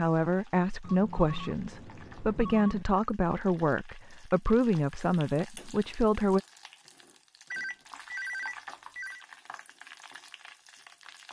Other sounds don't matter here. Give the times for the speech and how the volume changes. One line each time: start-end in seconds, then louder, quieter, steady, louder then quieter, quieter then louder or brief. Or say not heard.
0.0-6.4 steady.